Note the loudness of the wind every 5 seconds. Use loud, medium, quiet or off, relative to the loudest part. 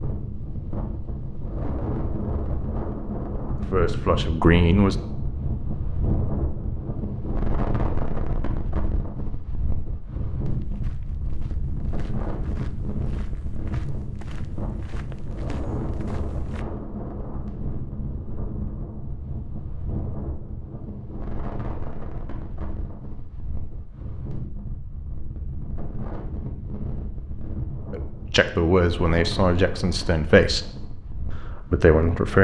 loud, loud, loud, loud, medium, medium, medium.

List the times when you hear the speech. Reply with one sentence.
The speech can be heard from 3.5 to 5.0 s, from 27.9 to 30.7 s and from 31.5 to 32.3 s.